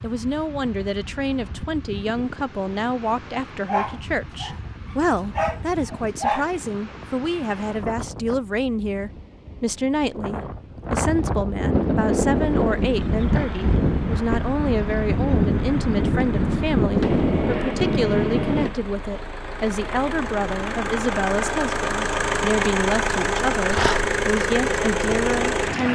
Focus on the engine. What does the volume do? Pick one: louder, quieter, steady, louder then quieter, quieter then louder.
louder.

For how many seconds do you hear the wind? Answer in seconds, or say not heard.
19 s.